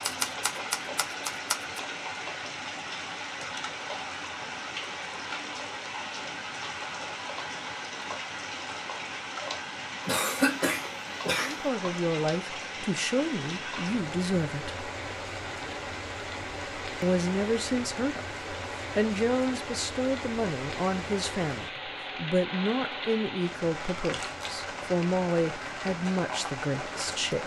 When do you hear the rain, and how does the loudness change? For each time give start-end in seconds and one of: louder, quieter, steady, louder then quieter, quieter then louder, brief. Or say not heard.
0.0-27.4 steady.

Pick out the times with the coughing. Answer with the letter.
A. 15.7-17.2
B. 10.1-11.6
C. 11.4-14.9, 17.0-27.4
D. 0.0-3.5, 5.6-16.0
B.